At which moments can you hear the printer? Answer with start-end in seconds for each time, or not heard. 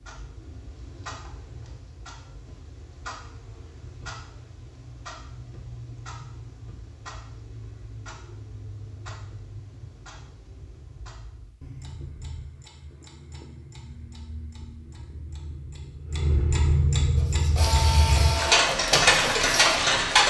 17.1-20.2.